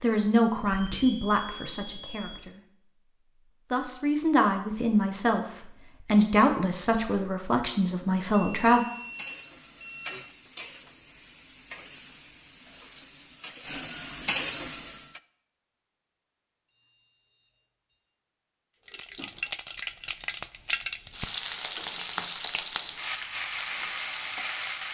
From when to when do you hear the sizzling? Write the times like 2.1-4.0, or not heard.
8.7-15.2, 18.9-24.8.